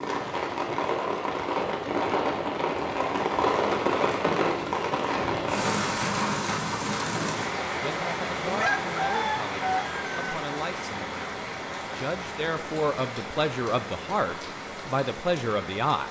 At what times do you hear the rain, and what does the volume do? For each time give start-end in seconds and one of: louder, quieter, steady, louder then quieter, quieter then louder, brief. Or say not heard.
0.0-16.0 quieter.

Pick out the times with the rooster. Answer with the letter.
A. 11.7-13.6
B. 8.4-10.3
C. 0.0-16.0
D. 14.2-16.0
B.